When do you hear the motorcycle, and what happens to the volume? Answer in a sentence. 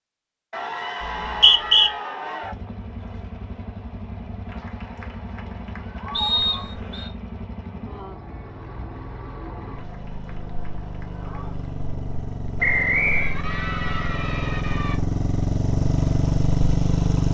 The motorcycle can be heard from 2.4 to 17.3 s, getting louder.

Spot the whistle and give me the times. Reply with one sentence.
The whistle can be heard from 1.0 to 1.9 s, from 6.1 to 7.1 s and from 12.6 to 13.3 s.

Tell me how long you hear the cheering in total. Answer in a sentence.
The cheering can be heard for 8 seconds in total.